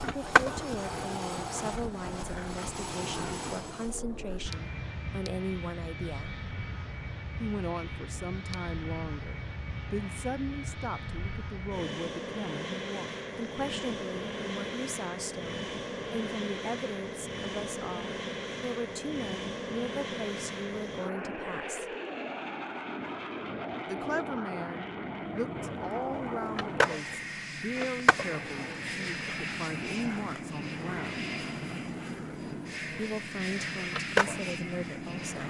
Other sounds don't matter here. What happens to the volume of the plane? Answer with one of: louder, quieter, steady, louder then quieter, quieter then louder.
steady.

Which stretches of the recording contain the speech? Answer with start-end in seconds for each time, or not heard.
0.0-6.3, 7.4-21.9, 23.9-31.2, 33.0-35.4.